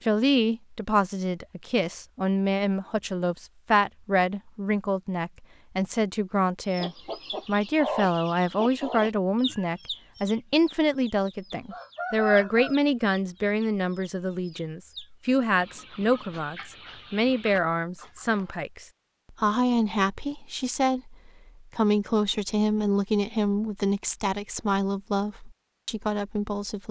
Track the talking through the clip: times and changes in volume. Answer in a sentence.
The talking can be heard from 0.0 to 26.8 s, at a steady volume.